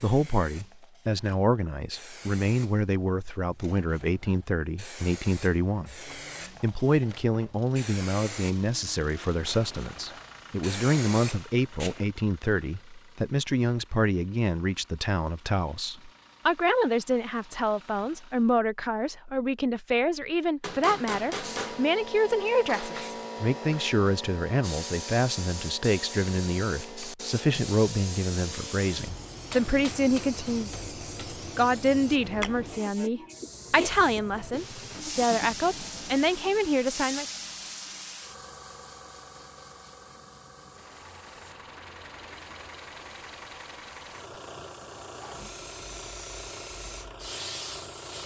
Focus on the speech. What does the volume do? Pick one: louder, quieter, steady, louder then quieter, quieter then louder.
steady.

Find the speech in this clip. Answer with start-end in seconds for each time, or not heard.
0.0-30.8, 31.6-37.2.